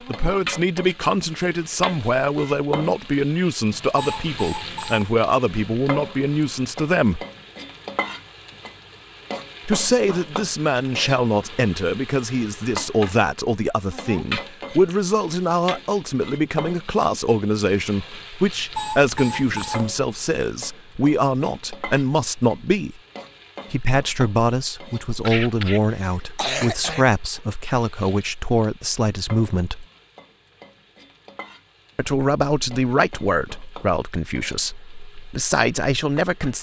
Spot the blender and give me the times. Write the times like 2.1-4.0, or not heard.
not heard.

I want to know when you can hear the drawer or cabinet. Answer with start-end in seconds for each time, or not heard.
not heard.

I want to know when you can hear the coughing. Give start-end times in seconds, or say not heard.
25.2-27.1.